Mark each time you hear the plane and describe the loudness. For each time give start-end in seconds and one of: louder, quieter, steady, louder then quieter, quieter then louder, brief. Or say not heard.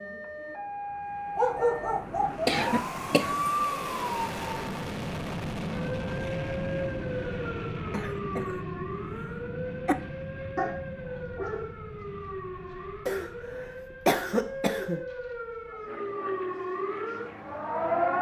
0.1-18.1 louder then quieter.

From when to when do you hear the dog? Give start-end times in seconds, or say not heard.
1.4-2.3, 10.6-11.7.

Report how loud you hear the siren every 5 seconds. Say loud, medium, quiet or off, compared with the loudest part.
loud, medium, medium, loud.